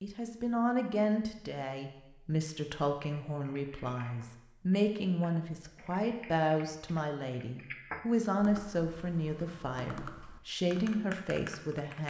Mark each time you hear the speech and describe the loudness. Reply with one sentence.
The speech can be heard from 0.0 to 12.0 s, at a steady volume.